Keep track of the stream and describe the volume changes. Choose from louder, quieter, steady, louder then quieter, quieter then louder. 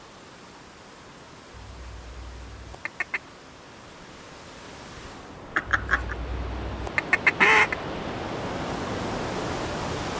louder.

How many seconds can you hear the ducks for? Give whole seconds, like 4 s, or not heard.
4 s.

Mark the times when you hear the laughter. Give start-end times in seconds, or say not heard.
5.5-6.2.